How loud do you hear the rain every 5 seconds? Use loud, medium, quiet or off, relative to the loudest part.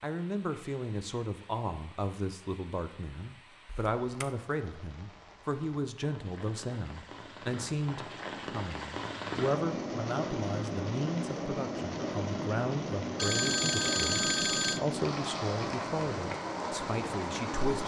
quiet, medium, loud, loud.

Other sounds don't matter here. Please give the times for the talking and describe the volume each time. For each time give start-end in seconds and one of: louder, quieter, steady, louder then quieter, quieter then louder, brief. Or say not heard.
0.0-17.8 steady.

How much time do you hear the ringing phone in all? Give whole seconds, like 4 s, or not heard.
2 s.